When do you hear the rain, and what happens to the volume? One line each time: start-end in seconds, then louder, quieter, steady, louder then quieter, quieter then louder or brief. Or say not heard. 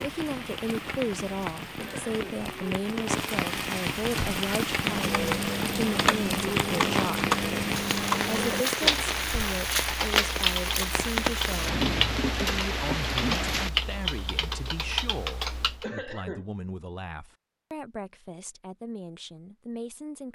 0.0-13.7 louder.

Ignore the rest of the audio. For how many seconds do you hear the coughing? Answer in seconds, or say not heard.
2 s.